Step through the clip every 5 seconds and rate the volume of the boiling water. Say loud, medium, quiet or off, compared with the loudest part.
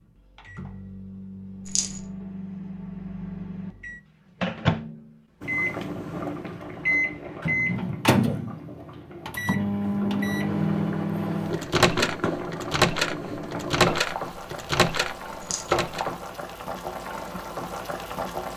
off, medium, loud, loud.